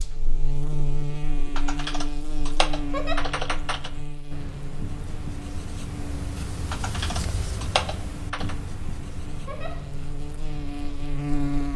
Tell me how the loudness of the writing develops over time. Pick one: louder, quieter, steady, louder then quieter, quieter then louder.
louder then quieter.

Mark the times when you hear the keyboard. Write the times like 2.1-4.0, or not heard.
1.6-3.9, 6.7-8.6.